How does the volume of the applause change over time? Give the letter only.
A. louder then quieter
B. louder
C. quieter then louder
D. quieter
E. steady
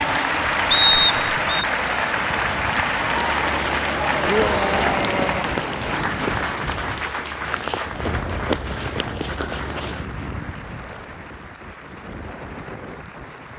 D.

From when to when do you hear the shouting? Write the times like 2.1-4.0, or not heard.
4.2-5.5.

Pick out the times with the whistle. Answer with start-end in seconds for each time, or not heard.
0.7-1.6.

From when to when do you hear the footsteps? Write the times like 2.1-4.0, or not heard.
3.0-10.1.